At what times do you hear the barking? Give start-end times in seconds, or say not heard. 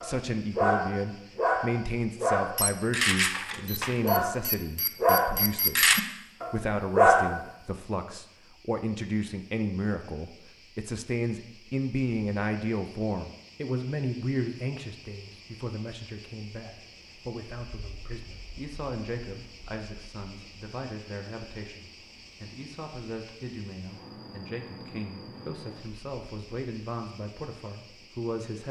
0.0-7.4.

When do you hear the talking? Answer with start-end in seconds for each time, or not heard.
0.0-5.9, 6.5-28.6.